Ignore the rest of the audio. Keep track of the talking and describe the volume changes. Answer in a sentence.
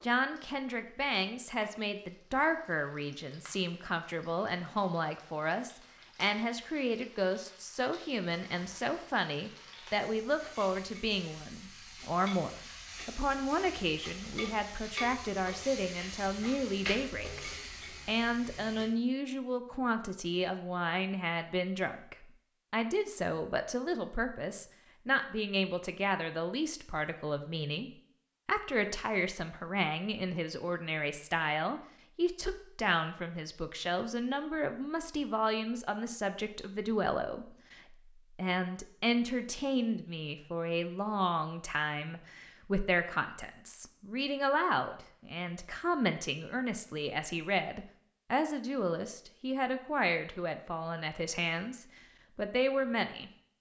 The volume of the talking stays about the same.